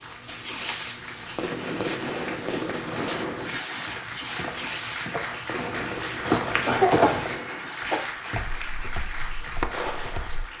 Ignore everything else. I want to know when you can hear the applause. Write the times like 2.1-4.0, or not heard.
0.0-10.5.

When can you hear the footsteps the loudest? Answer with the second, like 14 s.
7 s.